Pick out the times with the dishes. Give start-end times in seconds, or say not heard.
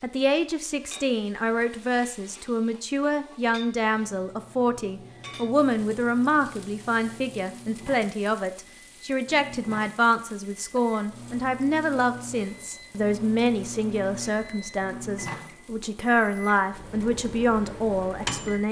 not heard.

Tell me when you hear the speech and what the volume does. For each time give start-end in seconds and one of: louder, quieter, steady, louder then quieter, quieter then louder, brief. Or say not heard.
0.0-18.6 steady.